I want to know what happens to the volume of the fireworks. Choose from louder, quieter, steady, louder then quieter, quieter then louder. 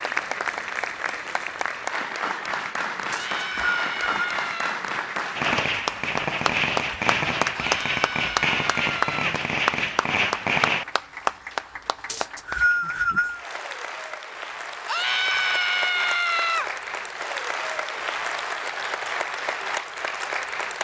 steady.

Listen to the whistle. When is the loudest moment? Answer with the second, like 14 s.
13 s.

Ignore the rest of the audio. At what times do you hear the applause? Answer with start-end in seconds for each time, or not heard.
0.0-20.7.